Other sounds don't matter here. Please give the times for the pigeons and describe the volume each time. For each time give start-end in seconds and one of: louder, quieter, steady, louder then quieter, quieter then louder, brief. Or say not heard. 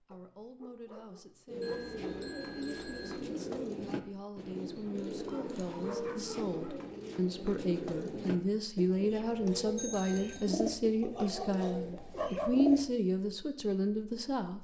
1.4-12.8 steady.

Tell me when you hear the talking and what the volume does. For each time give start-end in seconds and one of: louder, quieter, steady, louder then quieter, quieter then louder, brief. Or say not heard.
0.0-14.5 louder.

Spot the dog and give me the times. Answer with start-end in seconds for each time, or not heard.
0.1-1.8, 5.3-6.8, 11.0-12.6.